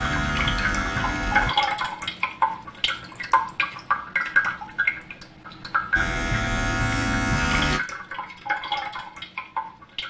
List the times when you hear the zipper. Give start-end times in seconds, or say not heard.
not heard.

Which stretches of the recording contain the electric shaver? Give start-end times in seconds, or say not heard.
0.0-1.6, 5.9-7.8.